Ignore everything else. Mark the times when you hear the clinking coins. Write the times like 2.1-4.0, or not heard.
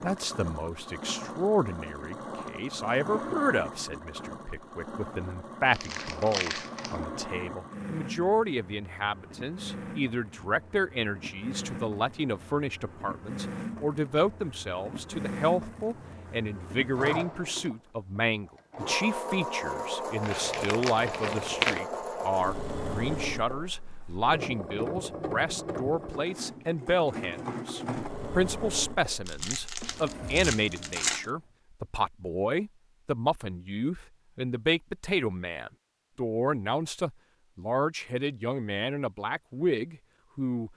not heard.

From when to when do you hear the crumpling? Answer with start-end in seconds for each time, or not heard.
5.7-7.0, 20.2-21.8, 29.2-31.3.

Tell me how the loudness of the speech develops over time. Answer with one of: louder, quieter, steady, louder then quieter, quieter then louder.
steady.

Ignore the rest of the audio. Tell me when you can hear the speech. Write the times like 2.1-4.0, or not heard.
0.0-40.7.